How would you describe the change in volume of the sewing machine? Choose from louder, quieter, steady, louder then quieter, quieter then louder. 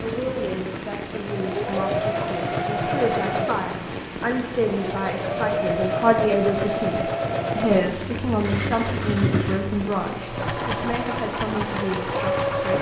steady.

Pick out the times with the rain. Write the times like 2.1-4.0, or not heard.
0.0-12.7.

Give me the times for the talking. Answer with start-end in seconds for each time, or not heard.
0.0-12.7.